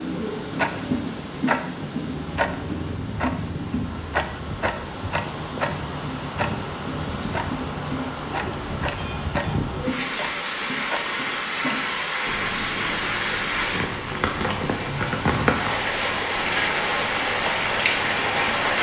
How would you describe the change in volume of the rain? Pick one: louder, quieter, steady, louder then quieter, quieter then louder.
louder.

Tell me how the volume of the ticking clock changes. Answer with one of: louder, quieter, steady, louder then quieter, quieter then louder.
quieter.